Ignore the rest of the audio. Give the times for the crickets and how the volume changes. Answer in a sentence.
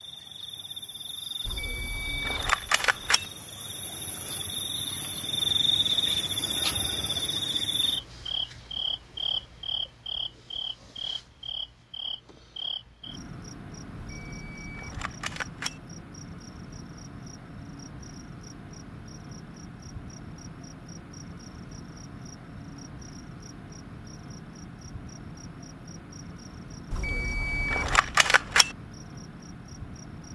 You can hear the crickets from 0.0 to 30.3 s, getting quieter.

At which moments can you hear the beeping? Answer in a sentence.
You can hear the beeping from 1.4 to 3.2 s, from 13.9 to 15.8 s and from 26.9 to 28.8 s.